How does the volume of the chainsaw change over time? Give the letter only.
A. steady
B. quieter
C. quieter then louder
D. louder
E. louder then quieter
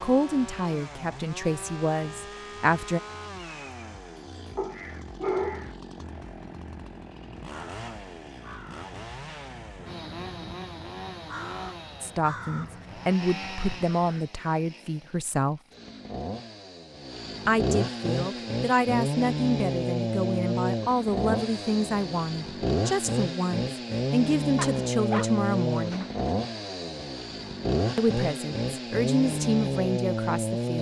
D.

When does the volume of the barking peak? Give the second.
5 s.